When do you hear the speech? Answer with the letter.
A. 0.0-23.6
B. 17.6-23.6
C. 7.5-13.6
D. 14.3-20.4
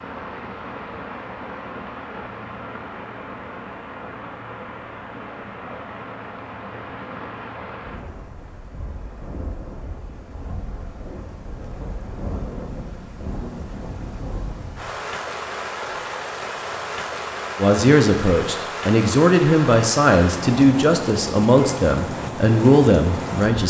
B.